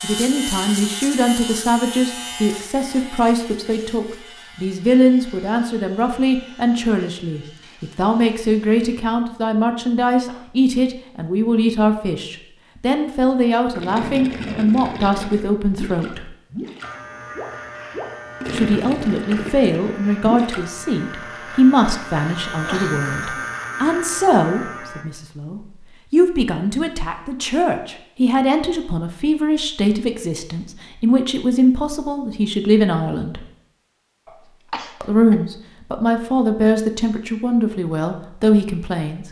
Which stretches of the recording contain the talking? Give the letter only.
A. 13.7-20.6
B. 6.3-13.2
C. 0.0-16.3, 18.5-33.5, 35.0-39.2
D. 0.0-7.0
C.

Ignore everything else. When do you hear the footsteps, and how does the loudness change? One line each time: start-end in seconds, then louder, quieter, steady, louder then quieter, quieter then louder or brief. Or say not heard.
not heard.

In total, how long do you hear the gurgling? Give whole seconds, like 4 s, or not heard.
7 s.